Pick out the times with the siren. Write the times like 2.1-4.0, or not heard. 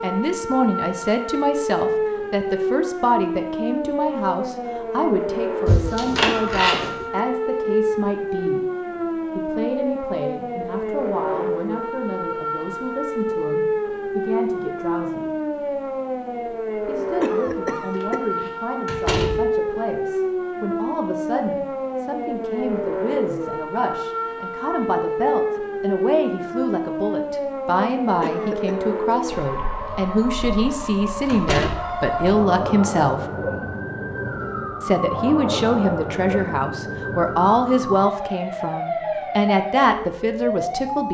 0.0-41.0.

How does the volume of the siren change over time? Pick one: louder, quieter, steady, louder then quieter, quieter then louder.
steady.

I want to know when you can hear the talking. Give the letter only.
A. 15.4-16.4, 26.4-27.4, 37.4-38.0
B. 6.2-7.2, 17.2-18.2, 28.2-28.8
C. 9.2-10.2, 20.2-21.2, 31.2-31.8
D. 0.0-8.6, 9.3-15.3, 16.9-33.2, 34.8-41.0
D.